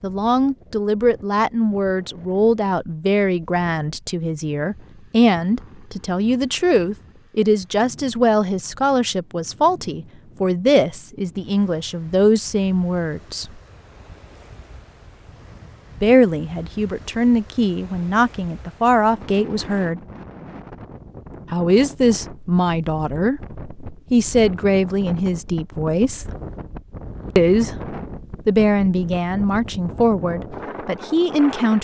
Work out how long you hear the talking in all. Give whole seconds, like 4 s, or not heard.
27 s.